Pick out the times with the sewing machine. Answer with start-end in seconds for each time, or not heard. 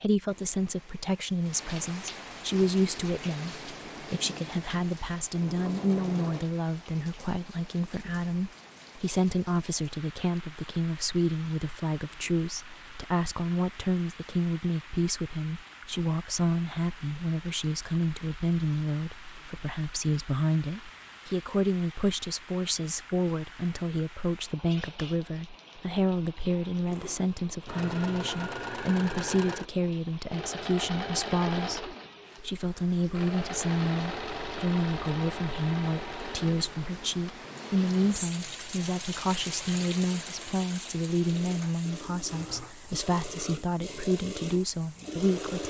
2.5-6.5, 26.9-45.6.